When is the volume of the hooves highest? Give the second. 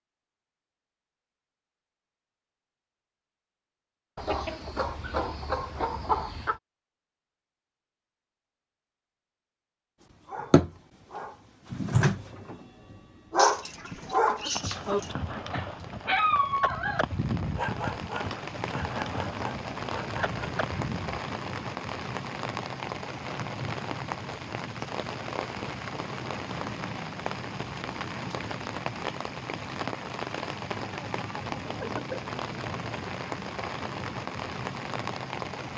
17 s.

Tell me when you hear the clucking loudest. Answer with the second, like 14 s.
6 s.